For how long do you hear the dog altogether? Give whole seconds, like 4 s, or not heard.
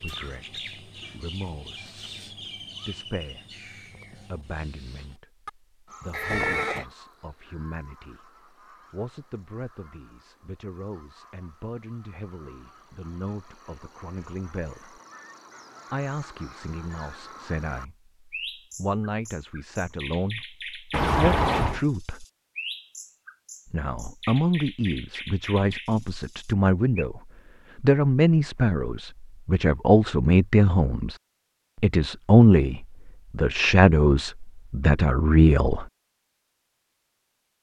not heard.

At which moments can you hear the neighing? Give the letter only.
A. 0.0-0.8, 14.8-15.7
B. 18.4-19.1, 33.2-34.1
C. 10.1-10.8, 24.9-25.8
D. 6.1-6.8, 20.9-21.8
D.